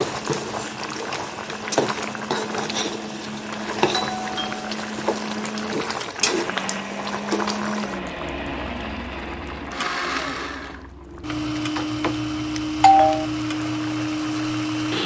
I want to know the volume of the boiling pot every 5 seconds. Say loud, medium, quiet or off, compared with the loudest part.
loud, loud, quiet.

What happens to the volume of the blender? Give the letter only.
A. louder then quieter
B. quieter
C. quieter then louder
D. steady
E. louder
E.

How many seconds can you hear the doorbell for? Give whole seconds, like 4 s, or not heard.
3 s.